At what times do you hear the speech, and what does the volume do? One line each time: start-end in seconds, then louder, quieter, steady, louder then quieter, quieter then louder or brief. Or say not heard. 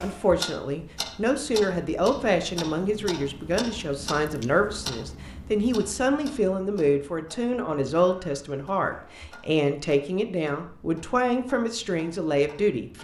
0.0-12.9 steady.